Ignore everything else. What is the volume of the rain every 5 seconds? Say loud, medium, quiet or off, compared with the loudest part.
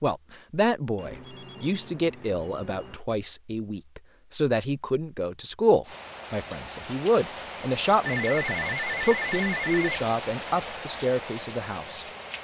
off, loud, loud.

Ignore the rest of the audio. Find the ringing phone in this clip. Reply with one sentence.
The ringing phone can be heard from 0.9 to 3.0 s and from 8.1 to 9.8 s.